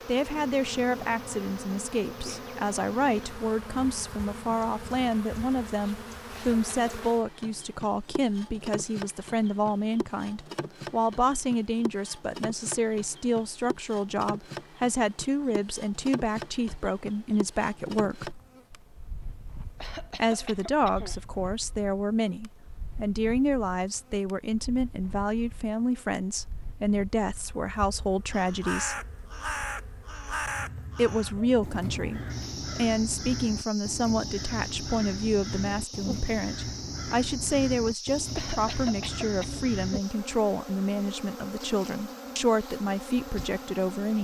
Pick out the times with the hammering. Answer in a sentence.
You can't hear the hammering here.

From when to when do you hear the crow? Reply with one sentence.
The crow can be heard from 28.3 to 40.0 s.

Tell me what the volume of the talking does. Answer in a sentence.
The loudness of the talking stays about the same.